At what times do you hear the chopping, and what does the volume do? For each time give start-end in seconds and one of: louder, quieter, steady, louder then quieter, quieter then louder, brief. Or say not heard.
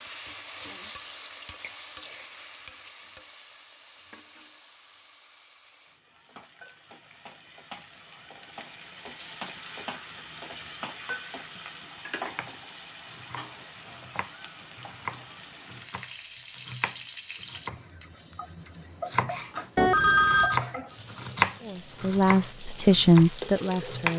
12.3-24.1 louder then quieter.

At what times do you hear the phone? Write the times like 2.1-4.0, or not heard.
19.8-20.6.